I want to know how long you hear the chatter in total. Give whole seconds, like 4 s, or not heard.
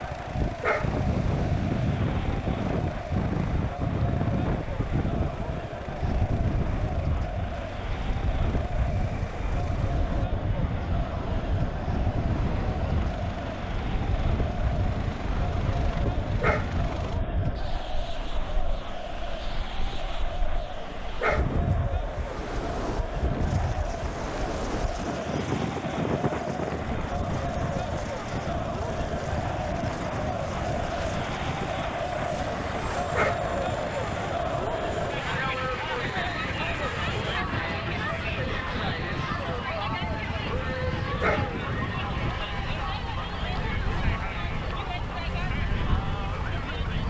47 s.